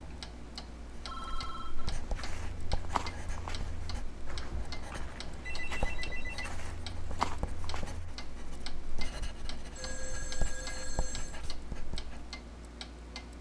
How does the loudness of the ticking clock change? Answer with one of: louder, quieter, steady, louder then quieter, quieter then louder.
steady.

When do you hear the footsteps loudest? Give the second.
7 s.